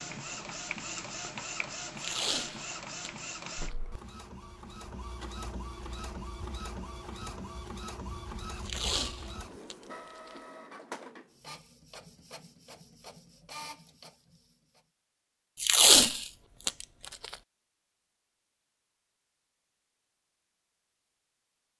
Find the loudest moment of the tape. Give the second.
16 s.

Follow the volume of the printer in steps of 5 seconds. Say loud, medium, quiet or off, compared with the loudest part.
loud, loud, medium, off, off.